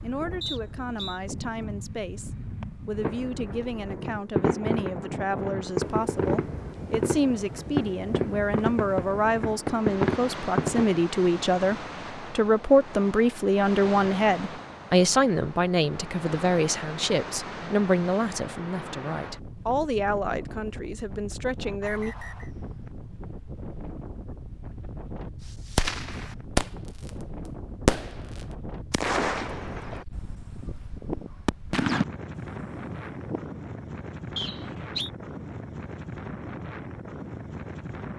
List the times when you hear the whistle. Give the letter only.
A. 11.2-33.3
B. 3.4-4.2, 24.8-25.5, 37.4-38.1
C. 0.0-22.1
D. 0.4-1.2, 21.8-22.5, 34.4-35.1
D.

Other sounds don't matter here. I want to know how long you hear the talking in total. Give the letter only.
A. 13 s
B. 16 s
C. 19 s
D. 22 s
D.